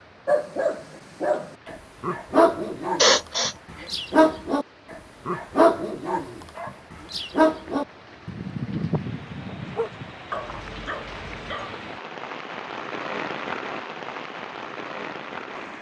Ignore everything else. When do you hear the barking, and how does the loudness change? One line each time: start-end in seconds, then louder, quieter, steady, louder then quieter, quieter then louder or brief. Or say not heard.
0.2-11.8 quieter.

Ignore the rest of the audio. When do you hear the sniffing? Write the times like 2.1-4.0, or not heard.
3.0-3.9.